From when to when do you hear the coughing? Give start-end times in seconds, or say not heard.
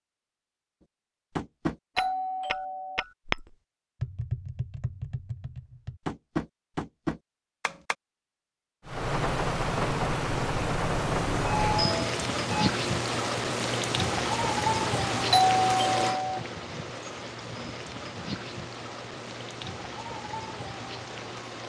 not heard.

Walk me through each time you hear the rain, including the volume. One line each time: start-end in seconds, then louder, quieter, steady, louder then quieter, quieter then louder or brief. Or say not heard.
8.8-21.6 quieter.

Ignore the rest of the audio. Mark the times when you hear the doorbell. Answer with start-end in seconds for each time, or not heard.
1.9-3.0, 11.4-12.7, 15.3-16.4.